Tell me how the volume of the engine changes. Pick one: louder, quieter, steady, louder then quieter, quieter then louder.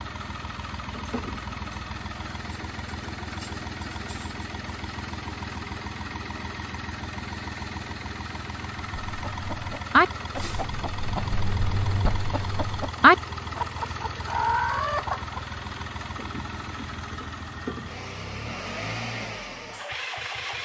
steady.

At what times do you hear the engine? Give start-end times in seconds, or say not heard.
0.0-20.6.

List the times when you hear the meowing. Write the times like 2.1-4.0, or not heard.
not heard.